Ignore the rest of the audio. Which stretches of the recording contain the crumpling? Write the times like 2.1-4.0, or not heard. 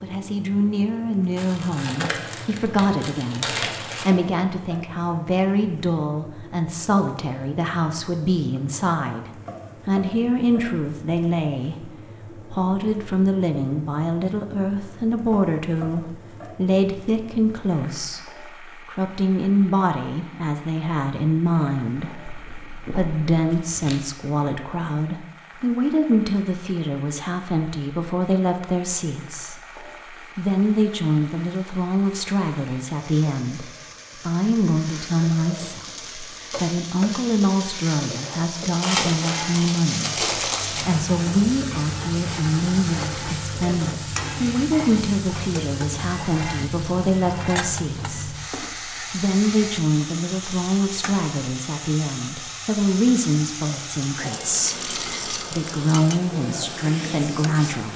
1.4-4.1, 22.2-24.0, 38.8-40.9.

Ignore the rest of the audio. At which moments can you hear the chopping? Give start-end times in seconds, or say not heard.
not heard.